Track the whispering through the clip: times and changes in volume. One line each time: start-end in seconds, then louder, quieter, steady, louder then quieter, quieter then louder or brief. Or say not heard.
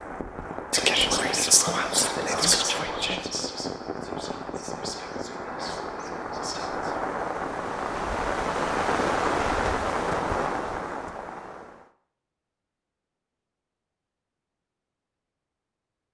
0.7-7.0 quieter.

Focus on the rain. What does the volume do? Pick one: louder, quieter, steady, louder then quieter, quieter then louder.
louder.